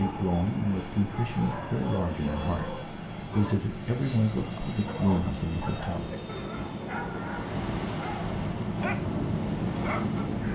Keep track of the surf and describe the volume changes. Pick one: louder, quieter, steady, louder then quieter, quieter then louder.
louder.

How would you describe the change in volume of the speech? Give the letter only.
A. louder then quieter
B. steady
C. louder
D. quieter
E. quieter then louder
B.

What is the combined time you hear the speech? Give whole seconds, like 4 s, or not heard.
6 s.